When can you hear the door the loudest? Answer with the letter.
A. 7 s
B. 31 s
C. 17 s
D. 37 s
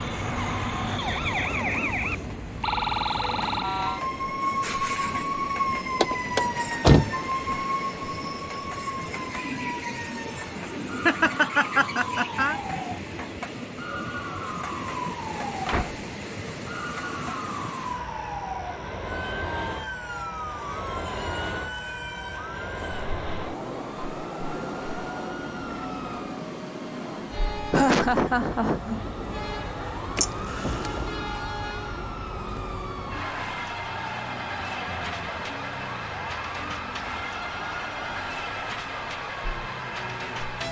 A.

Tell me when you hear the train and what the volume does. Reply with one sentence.
You can hear the train from 0.0 to 40.6 s, at a steady volume.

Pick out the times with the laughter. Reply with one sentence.
The laughter can be heard from 11.1 to 12.6 s and from 27.7 to 29.0 s.